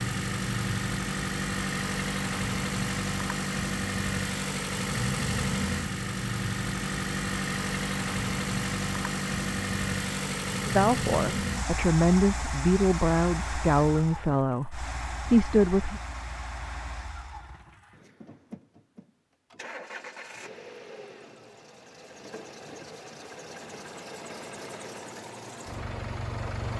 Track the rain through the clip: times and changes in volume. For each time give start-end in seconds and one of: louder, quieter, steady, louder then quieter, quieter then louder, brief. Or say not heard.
not heard.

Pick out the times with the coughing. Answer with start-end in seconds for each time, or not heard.
not heard.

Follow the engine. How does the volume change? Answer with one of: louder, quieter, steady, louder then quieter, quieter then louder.
quieter.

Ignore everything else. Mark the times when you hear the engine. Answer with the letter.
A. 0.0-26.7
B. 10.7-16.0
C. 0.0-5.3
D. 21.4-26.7
A.